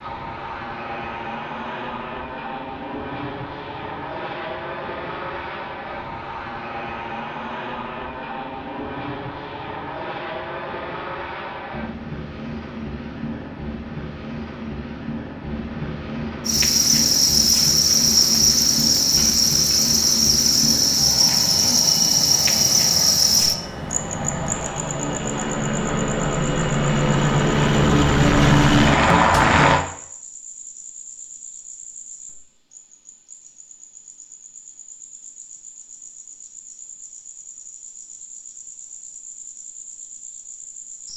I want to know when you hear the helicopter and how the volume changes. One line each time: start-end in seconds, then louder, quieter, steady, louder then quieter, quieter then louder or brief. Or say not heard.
0.0-29.8 louder.